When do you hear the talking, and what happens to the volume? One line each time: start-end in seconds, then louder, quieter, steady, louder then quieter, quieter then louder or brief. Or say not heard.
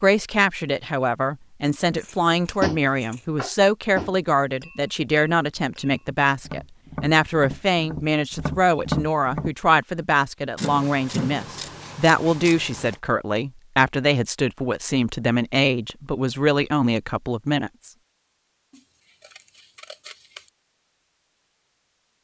0.0-17.9 steady.